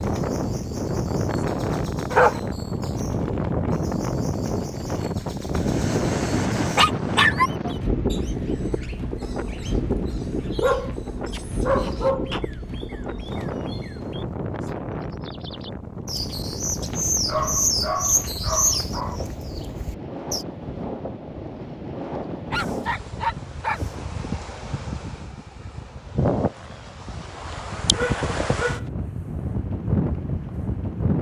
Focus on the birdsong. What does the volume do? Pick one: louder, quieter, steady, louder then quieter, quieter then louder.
louder.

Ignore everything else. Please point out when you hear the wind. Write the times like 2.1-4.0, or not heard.
0.0-31.1.